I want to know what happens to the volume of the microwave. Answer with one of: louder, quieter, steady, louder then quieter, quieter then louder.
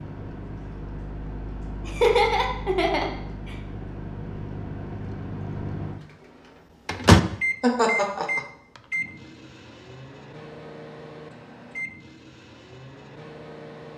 louder then quieter.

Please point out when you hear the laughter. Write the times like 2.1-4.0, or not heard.
1.9-3.5, 7.6-8.4.